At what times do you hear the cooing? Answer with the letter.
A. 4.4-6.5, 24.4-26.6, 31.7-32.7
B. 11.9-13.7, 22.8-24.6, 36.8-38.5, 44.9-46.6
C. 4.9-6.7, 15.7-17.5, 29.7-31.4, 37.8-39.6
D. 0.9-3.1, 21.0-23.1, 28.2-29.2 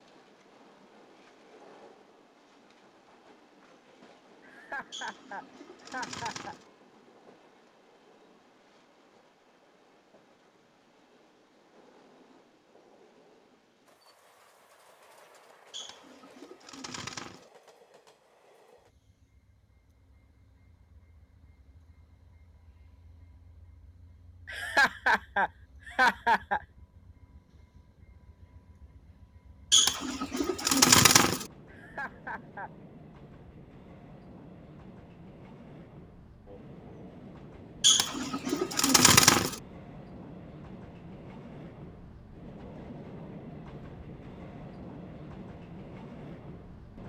C.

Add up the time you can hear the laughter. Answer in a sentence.
You can hear the laughter for 5 seconds altogether.